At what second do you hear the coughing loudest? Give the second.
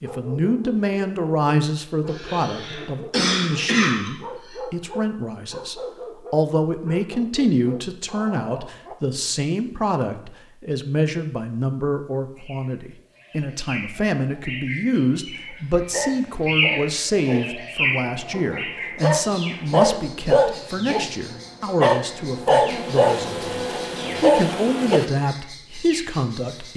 3 s.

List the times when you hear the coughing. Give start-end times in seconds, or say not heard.
2.0-4.5.